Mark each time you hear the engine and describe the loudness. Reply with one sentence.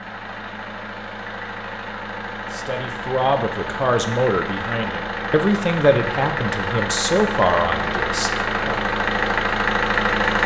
You can hear the engine from 0.0 to 10.4 s, getting louder.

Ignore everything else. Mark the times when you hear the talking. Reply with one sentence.
You can hear the talking from 2.5 to 8.8 s.